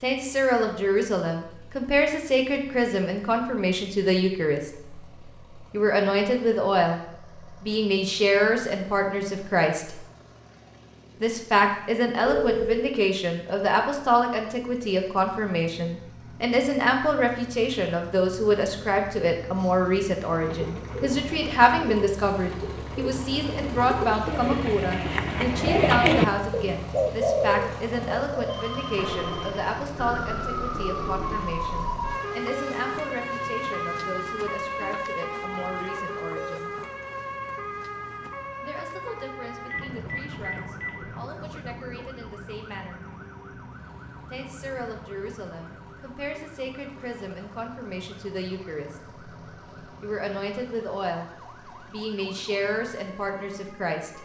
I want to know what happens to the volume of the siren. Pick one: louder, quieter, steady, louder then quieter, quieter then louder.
quieter.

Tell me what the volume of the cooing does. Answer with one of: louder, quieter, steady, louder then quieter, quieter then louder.
louder then quieter.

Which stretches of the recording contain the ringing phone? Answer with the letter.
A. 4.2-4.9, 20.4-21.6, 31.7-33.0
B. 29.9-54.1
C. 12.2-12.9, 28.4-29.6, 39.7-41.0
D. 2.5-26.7
C.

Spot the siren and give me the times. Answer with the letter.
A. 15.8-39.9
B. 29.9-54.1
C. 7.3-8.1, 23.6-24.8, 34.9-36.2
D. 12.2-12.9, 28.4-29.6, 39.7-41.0
B.